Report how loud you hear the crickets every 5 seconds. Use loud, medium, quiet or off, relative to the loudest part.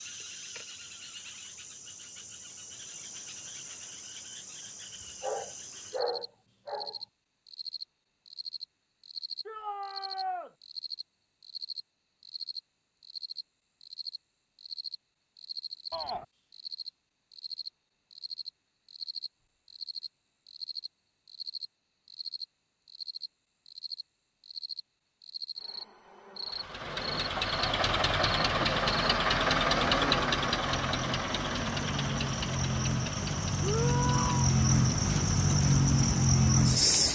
quiet, quiet, quiet, quiet, quiet, quiet, medium, loud.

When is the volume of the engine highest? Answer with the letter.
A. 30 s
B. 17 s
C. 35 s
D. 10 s
A.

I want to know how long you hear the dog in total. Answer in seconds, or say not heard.
2 s.